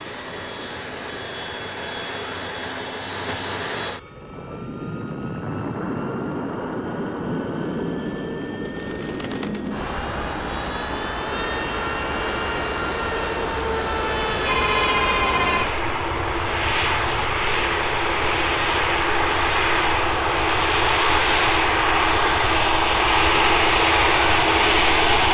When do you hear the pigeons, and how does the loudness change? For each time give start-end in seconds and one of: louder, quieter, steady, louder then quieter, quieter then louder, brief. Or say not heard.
not heard.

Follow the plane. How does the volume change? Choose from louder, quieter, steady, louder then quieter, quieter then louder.
louder.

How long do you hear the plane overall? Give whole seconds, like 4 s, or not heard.
25 s.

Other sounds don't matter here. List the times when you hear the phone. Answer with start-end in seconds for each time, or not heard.
14.4-15.7.